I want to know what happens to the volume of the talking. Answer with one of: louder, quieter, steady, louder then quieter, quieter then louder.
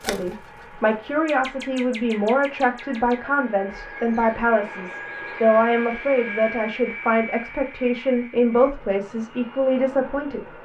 steady.